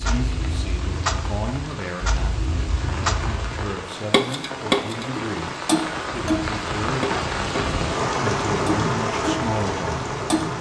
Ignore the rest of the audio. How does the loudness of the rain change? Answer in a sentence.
The loudness of the rain goes up.